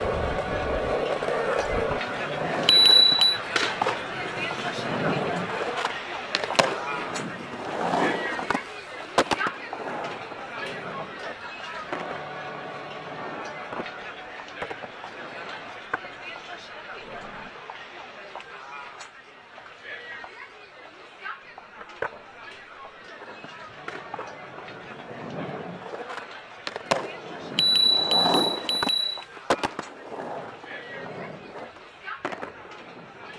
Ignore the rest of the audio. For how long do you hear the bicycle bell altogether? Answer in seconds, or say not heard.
2 s.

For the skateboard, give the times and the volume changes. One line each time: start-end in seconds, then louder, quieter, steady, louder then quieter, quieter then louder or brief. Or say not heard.
0.0-17.5 quieter
21.4-33.3 louder then quieter.